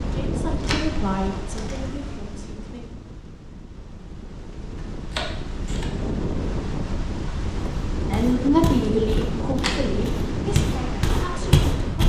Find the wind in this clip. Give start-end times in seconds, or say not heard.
0.0-12.0.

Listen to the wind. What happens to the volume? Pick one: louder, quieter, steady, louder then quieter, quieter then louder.
quieter then louder.